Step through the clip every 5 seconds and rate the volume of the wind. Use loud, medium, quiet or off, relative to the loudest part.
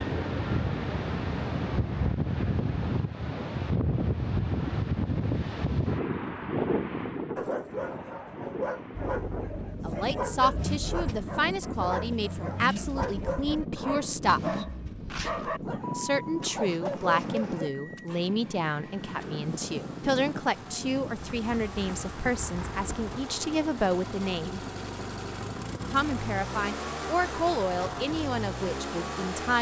loud, loud, medium, medium, medium, off.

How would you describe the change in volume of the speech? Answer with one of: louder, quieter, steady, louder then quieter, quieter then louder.
steady.